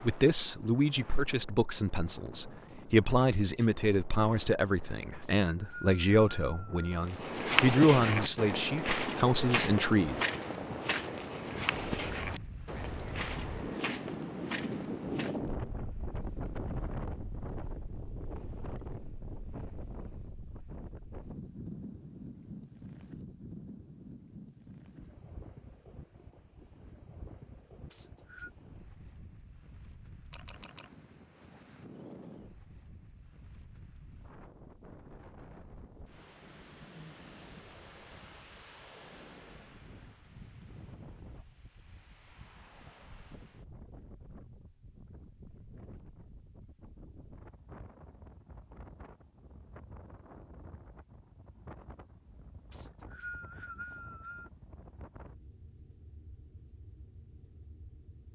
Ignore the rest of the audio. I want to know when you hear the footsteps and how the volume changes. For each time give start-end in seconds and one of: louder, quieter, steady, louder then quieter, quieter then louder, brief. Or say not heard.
7.0-15.5 quieter.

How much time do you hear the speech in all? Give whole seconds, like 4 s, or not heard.
10 s.